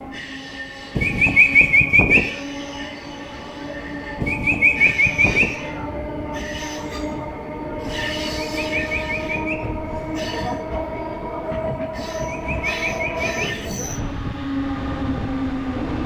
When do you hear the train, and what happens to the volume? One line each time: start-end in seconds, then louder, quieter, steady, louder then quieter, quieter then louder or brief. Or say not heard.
0.0-16.0 louder.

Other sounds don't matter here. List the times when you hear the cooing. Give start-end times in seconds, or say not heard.
0.9-2.2, 4.2-5.5, 8.3-9.6, 12.2-13.5.